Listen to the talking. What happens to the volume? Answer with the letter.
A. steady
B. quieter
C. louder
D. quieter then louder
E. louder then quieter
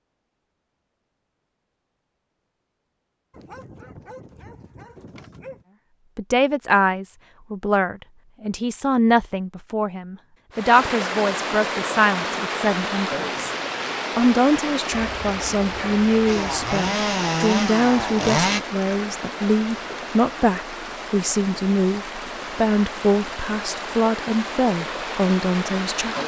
A.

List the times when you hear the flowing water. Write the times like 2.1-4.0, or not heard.
10.5-26.2.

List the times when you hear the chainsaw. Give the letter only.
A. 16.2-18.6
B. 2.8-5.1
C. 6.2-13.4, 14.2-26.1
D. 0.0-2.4
A.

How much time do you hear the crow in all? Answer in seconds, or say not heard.
not heard.